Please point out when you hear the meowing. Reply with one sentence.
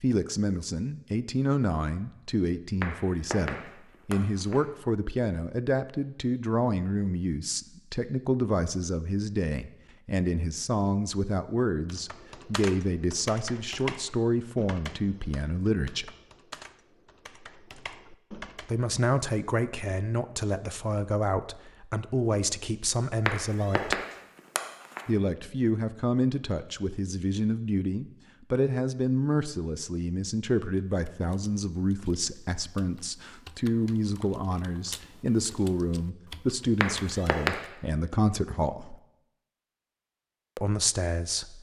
You can hear the meowing from 2.8 to 4.6 s, from 23.2 to 25.1 s and from 36.8 to 37.5 s.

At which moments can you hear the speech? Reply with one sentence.
You can hear the speech from 0.0 to 16.1 s, from 18.6 to 24.0 s, from 25.1 to 39.0 s and from 40.5 to 41.5 s.